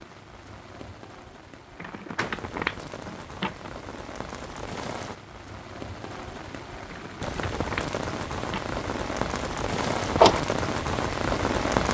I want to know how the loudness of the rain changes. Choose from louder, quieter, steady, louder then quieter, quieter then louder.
louder.